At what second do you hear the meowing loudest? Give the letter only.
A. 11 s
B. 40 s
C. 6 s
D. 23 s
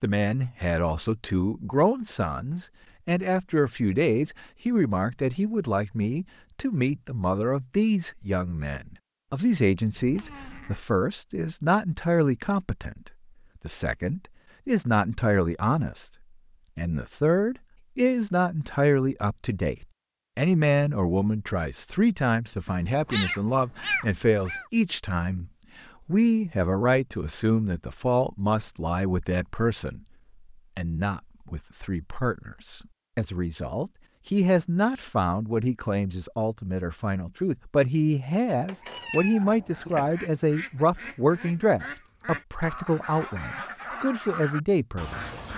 D.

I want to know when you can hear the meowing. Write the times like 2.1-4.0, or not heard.
9.9-10.8, 22.6-24.6, 38.6-40.1.